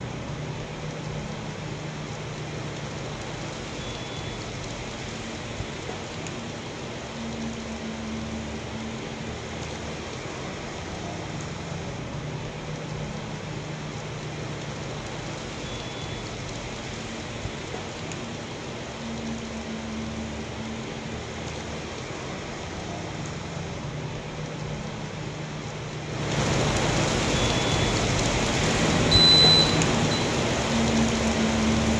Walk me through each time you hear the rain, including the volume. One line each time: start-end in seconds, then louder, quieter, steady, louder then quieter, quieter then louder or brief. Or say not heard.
0.0-31.9 louder.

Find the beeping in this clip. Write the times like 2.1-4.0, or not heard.
28.6-30.2.